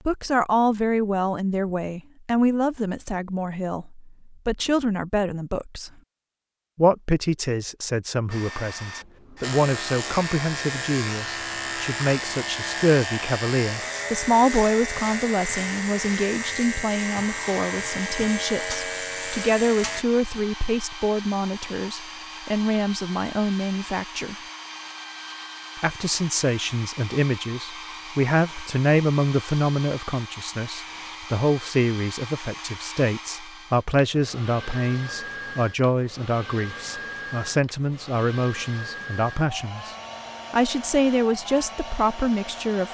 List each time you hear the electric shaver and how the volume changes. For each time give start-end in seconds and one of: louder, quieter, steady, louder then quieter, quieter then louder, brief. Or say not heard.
9.4-20.1 steady.